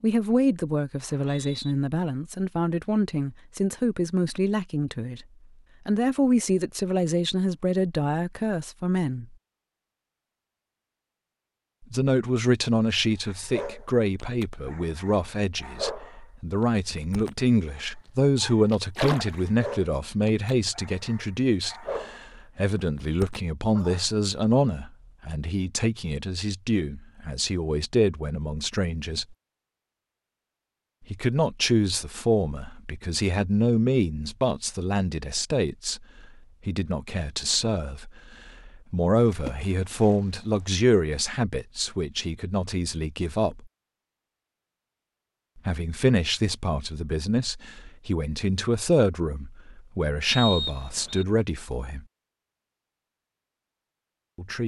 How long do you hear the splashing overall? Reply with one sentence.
You can hear the splashing for 2 seconds altogether.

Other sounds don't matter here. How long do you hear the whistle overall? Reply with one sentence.
You can hear the whistle for 2 seconds altogether.